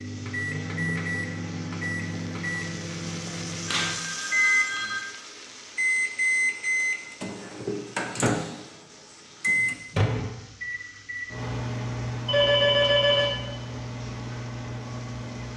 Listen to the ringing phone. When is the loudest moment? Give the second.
13 s.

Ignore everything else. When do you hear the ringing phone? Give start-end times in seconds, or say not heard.
3.2-5.0, 12.2-13.4.